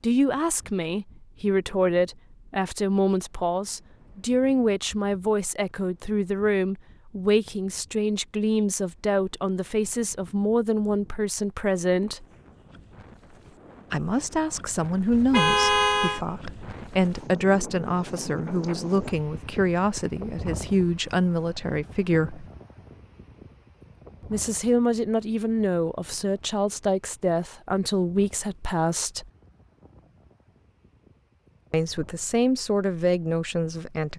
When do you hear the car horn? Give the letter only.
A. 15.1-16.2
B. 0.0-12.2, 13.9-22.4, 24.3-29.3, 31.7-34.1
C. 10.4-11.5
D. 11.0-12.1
A.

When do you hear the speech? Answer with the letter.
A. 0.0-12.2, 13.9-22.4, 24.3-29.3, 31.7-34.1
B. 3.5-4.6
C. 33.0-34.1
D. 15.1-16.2
A.